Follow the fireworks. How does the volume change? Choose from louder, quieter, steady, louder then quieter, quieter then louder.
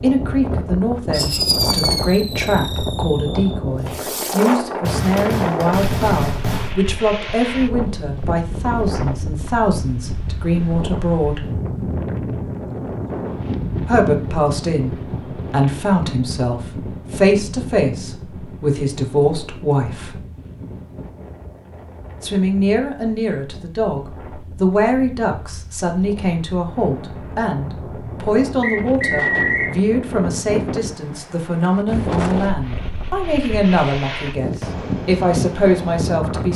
quieter then louder.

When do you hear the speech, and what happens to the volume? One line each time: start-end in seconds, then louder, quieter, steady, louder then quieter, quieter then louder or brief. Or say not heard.
0.0-11.4 steady
13.8-20.2 steady
22.2-24.0 brief
24.6-36.5 steady.